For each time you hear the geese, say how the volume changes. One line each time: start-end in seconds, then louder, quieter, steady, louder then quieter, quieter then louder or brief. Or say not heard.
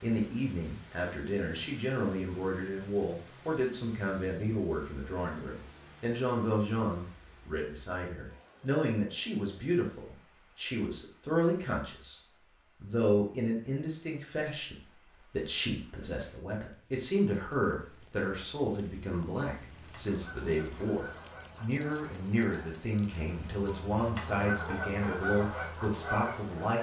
19.6-26.7 louder.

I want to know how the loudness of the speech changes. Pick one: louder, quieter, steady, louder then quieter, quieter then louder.
steady.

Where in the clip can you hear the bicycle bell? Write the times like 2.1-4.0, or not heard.
not heard.